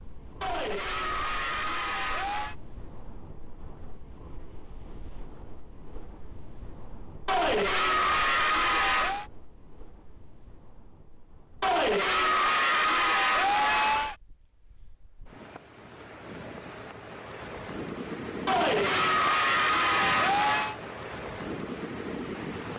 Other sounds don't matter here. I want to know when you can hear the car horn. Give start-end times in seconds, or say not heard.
not heard.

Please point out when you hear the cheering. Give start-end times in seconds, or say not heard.
0.4-2.5, 7.2-9.2, 11.6-14.2, 18.4-20.8.